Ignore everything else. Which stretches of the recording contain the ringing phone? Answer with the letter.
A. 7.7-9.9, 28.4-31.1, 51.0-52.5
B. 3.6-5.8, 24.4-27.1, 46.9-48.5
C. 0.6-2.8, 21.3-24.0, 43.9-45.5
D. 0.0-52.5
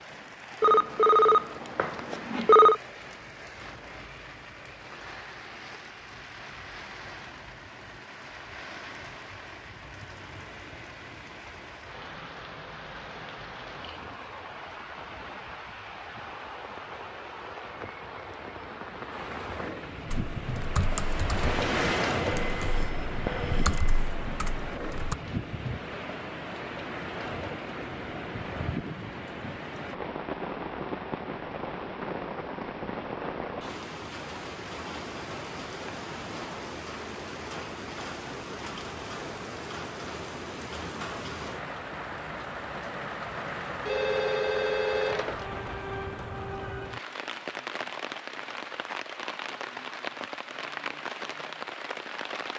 C.